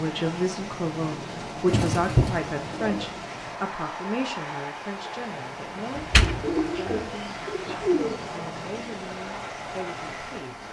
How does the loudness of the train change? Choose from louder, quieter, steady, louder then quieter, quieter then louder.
steady.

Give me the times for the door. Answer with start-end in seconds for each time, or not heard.
6.0-7.0.